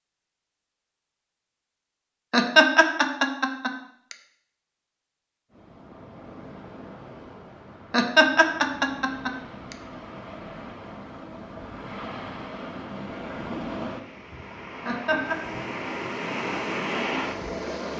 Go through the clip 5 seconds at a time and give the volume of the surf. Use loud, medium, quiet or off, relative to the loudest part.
off, quiet, medium, loud.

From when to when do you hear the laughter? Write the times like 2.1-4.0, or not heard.
2.3-4.2, 7.9-9.8, 14.8-15.3.